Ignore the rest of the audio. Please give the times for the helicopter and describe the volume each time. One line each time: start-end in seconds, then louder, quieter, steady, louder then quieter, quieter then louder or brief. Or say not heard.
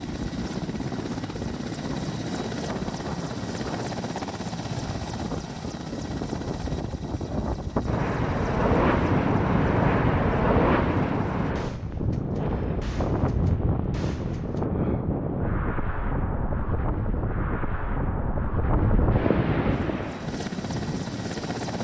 0.0-11.6 quieter
19.6-21.7 brief.